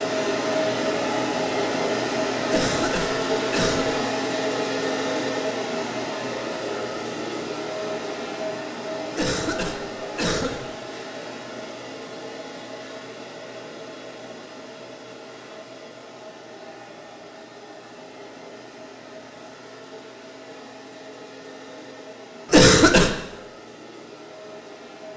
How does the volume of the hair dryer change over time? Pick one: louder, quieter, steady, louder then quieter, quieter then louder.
quieter.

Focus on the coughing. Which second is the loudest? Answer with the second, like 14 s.
23 s.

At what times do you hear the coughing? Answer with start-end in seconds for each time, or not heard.
2.5-4.0, 9.2-10.7, 22.5-23.1.